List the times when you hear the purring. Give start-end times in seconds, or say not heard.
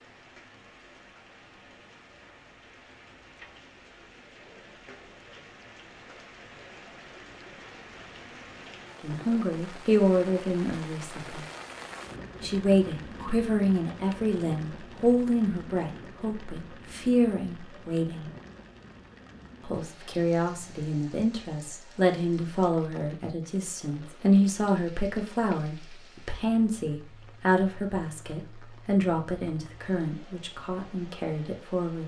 not heard.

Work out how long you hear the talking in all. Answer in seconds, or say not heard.
21 s.